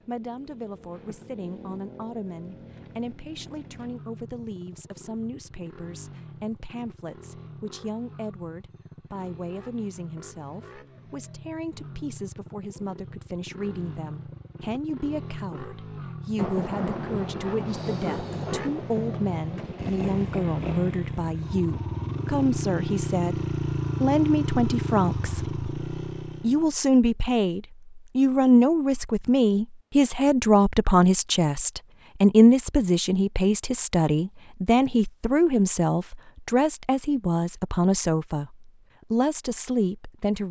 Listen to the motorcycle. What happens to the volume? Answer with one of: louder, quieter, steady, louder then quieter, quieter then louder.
louder.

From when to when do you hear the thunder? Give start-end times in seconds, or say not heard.
16.4-20.8.